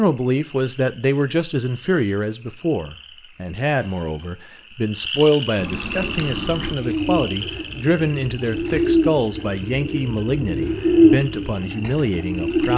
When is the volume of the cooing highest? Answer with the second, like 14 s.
11 s.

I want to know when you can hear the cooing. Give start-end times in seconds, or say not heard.
5.9-12.7.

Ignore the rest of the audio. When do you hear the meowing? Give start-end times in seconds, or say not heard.
5.5-6.8.